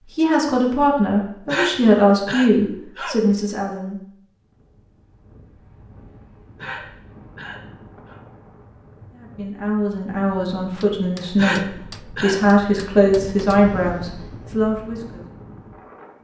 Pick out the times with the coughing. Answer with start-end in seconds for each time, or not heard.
1.4-3.4, 6.5-8.2, 11.3-12.4.